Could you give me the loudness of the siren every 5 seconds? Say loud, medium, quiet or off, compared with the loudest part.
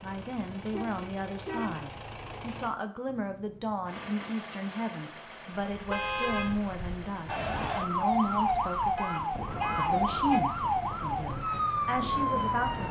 off, loud, loud.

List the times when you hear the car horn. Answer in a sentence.
The car horn can be heard from 0.7 to 1.9 s, from 5.9 to 6.6 s and from 8.9 to 10.4 s.